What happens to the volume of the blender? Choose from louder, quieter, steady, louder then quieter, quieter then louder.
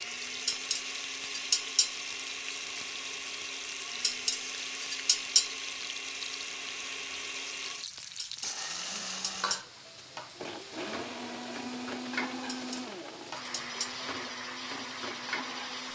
steady.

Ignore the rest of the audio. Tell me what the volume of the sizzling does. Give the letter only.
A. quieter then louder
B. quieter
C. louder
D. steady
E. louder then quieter
D.